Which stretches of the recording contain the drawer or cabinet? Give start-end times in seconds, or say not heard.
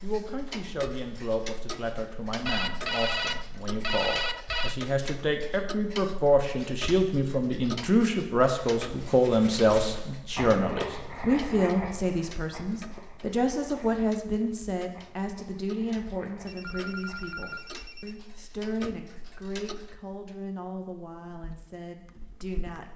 not heard.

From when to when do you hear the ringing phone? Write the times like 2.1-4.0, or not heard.
2.5-4.8, 16.4-18.1.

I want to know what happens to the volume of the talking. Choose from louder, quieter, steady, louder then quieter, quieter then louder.
louder then quieter.